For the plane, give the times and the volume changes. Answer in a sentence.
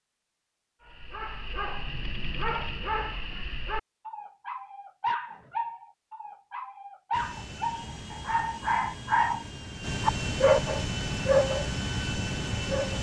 You can hear the plane from 7.1 to 12.9 s, getting louder.